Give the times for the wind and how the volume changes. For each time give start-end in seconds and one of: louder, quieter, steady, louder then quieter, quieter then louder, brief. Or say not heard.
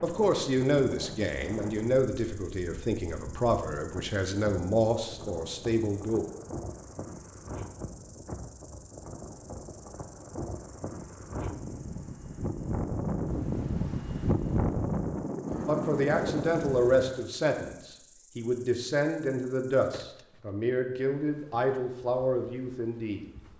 0.0-16.6 louder.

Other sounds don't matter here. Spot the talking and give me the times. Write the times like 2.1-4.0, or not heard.
0.0-6.3, 15.7-23.2.